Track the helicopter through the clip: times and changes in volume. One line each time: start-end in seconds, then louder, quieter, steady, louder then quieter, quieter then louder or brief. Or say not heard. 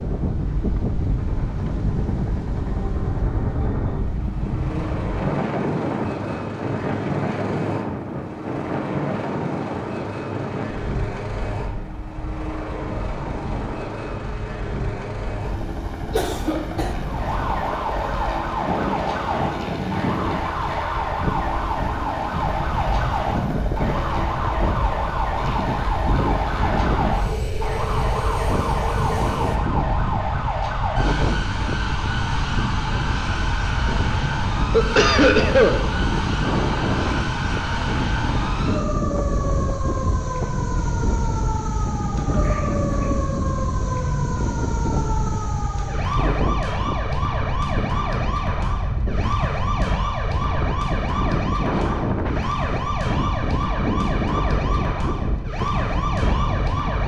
0.0-29.6 steady.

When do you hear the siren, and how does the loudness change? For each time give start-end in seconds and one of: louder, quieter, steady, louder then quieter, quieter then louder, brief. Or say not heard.
17.1-57.0 steady.